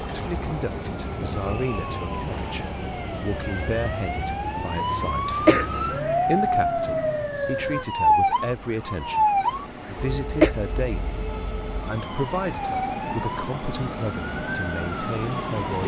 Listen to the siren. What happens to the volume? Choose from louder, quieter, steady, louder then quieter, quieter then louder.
louder then quieter.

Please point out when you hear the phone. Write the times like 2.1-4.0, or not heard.
not heard.